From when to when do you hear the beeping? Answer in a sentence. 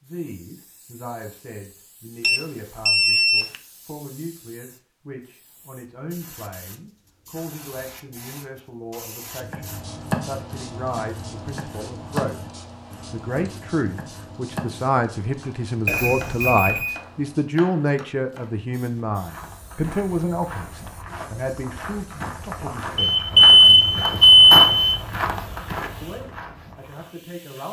You can hear the beeping from 2.2 to 3.5 s, from 15.8 to 16.9 s and from 22.9 to 25.0 s.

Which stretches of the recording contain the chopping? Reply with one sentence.
The chopping can be heard from 9.3 to 19.0 s.